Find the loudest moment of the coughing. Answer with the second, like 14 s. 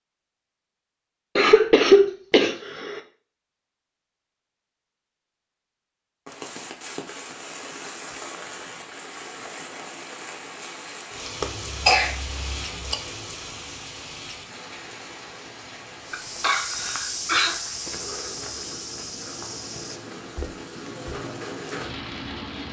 2 s.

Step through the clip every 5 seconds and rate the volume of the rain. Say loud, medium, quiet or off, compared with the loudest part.
off, loud, loud, medium, loud.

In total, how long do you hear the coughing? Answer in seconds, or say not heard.
5 s.